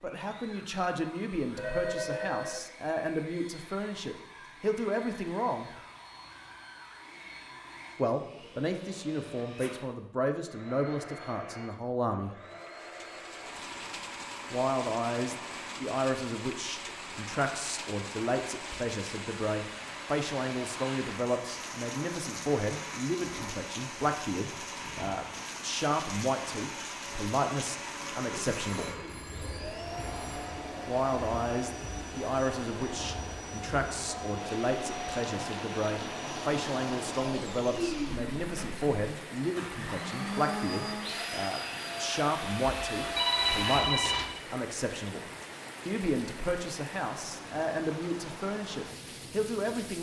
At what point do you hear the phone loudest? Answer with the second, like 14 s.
43 s.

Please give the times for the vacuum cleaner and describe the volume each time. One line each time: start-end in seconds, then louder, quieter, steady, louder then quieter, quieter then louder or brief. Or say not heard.
0.0-43.8 louder.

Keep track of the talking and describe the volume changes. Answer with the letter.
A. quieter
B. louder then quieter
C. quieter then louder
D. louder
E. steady
E.